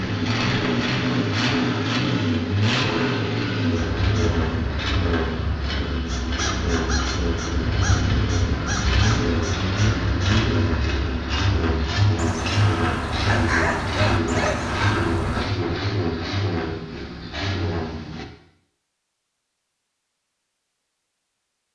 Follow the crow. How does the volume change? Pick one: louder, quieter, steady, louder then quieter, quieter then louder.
louder.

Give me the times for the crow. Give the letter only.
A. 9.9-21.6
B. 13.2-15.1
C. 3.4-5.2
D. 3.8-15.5
D.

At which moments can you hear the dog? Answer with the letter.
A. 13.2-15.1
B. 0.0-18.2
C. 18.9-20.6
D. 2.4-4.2
A.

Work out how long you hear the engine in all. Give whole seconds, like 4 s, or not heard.
18 s.